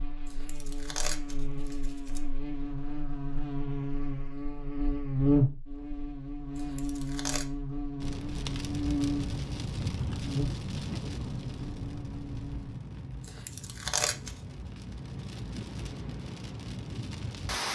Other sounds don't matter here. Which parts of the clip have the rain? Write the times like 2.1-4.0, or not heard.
8.0-17.6.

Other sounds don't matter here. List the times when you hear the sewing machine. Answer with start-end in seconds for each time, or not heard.
not heard.